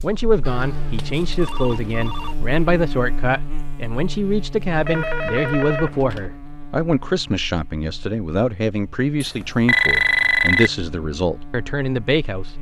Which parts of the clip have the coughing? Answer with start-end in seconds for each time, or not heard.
not heard.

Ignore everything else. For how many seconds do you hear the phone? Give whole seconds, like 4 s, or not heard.
5 s.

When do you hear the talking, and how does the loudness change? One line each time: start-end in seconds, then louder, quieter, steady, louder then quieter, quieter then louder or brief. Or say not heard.
0.0-12.5 steady.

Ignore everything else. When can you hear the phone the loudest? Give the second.
10 s.